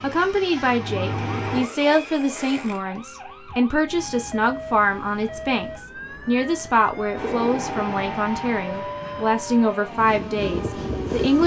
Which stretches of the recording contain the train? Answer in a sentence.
You can hear the train from 0.0 to 1.7 s and from 7.1 to 11.4 s.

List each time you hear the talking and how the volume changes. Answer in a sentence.
You can hear the talking from 0.0 to 11.4 s, at a steady volume.